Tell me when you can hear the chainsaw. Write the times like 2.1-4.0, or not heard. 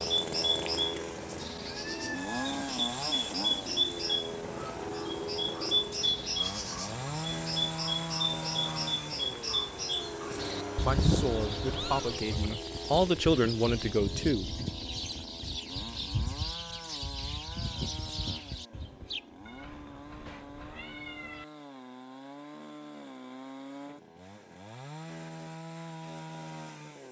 0.0-27.0.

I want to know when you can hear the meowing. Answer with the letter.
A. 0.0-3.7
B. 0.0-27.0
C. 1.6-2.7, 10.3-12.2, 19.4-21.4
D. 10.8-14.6
C.